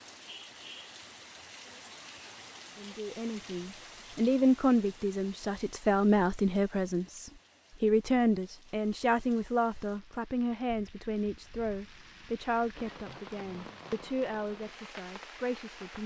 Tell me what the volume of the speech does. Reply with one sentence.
The volume of the speech goes down.